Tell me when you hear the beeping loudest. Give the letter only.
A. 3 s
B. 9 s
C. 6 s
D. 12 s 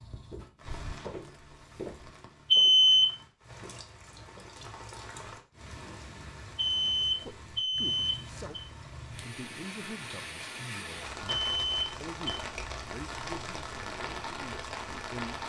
A.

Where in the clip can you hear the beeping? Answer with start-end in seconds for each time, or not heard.
2.5-3.0, 6.5-8.7, 11.3-12.3.